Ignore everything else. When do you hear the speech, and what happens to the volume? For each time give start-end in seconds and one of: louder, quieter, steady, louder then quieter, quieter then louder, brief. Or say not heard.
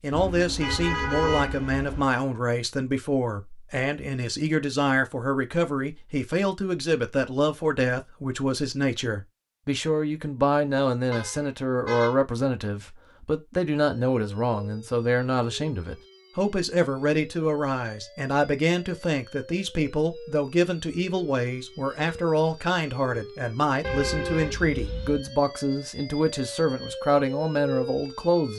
0.0-28.5 steady.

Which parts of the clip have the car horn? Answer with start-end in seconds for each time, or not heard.
0.1-2.0, 11.1-12.2, 23.8-25.2.